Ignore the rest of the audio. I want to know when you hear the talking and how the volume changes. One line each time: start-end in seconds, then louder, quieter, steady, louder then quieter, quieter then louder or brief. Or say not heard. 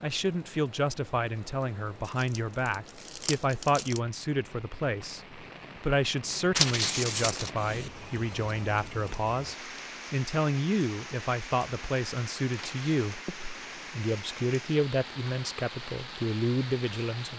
0.0-17.3 steady.